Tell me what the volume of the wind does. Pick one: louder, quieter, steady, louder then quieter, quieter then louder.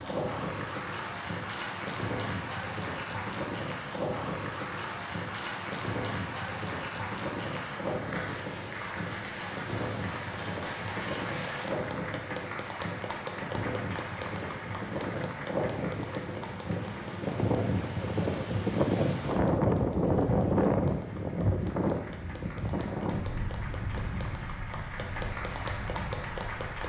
louder then quieter.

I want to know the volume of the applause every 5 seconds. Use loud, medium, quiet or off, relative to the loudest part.
loud, loud, loud, medium, medium, loud.